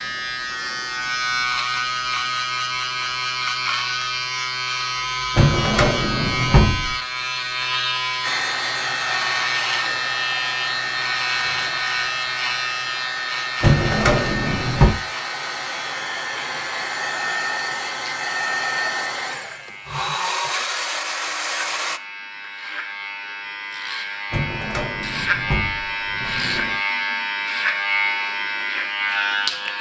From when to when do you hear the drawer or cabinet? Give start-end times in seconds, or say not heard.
5.3-7.0, 13.6-14.9, 24.3-26.8.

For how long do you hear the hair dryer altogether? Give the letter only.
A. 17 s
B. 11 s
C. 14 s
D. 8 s
C.